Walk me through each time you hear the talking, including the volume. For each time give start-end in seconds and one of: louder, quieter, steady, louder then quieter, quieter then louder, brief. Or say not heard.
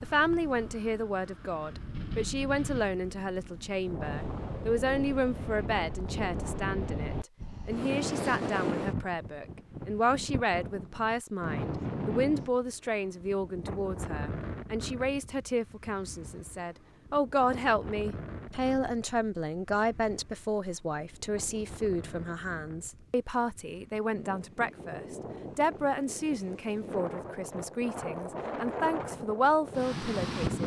0.0-30.6 steady.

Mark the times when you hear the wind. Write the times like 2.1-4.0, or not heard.
0.0-30.6.